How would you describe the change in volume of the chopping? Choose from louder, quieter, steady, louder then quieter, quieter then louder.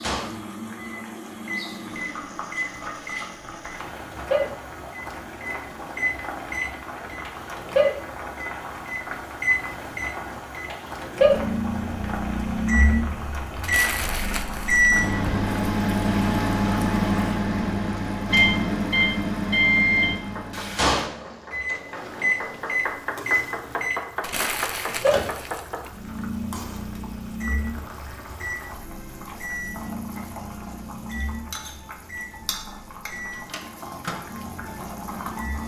louder.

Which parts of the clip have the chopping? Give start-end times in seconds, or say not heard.
20.2-25.9.